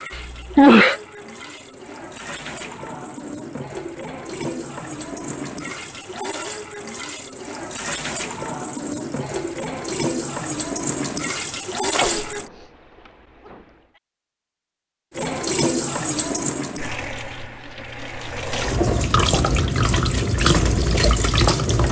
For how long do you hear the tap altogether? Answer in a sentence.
The tap can be heard for 19 seconds in total.